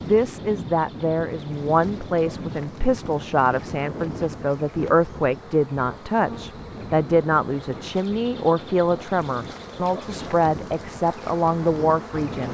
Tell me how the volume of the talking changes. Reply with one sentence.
The volume of the talking stays about the same.